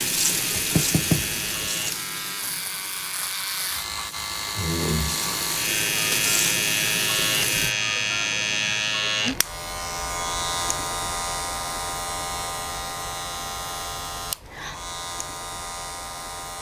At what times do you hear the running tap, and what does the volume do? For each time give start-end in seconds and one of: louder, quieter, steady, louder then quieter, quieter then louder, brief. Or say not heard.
0.0-7.8 quieter then louder.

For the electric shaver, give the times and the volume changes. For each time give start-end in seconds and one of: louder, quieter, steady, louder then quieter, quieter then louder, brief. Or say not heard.
0.0-16.5 louder then quieter.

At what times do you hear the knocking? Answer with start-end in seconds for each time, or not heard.
0.6-1.7.